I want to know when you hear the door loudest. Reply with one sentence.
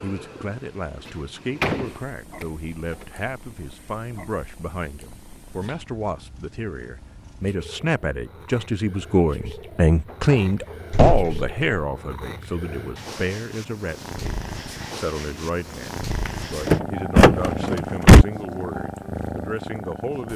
The volume of the door peaks at 18 seconds.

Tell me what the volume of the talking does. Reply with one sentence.
The loudness of the talking goes up, then down.